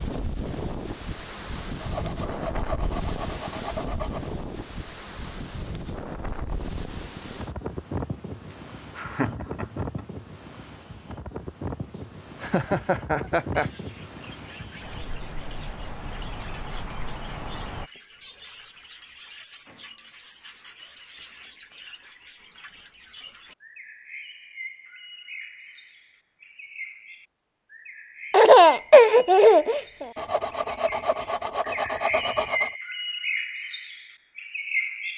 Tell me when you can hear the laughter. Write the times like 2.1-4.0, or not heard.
8.9-10.1, 12.4-13.7, 28.3-30.1.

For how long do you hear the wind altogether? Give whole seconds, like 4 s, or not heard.
18 s.